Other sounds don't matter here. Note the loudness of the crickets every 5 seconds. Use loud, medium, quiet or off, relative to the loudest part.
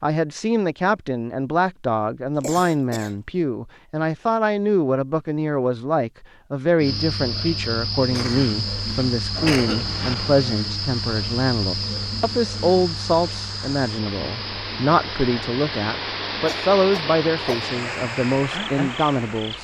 off, loud, loud, medium.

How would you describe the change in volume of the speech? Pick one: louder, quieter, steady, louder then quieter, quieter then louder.
steady.